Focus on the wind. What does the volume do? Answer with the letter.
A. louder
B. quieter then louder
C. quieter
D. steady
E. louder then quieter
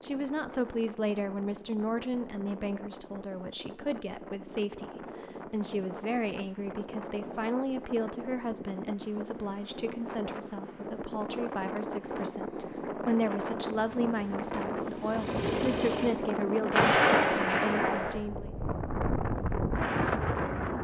A.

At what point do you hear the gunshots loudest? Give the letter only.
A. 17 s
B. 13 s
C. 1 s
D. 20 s
A.